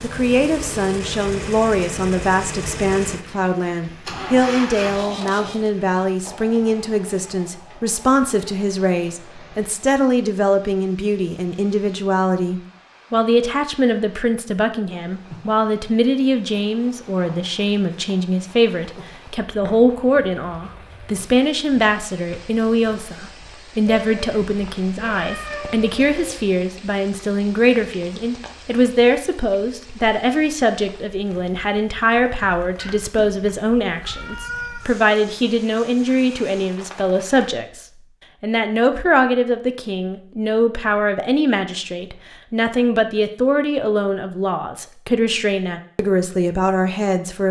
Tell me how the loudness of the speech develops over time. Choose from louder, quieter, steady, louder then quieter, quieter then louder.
steady.